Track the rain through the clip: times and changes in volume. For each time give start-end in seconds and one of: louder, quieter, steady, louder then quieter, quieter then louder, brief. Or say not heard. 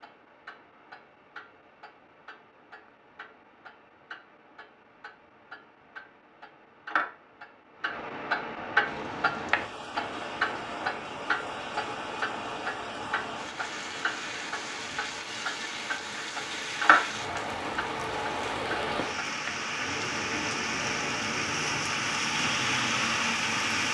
8.8-23.8 louder.